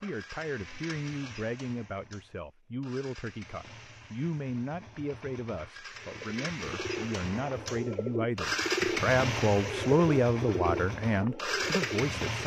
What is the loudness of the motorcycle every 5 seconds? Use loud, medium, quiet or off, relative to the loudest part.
quiet, loud, loud.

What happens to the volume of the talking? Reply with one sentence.
The loudness of the talking goes up.